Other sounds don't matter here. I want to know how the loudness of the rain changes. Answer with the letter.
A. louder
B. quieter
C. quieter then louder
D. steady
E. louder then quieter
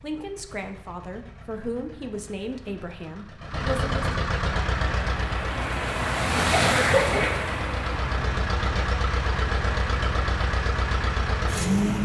B.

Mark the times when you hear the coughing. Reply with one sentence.
The coughing can be heard from 6.5 to 7.3 s.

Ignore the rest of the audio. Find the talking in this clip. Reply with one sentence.
You can hear the talking from 0.0 to 4.0 s.